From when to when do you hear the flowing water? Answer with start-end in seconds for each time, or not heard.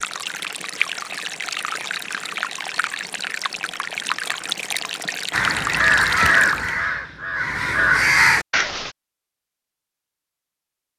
0.0-6.7.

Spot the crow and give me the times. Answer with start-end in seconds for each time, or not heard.
5.3-8.9.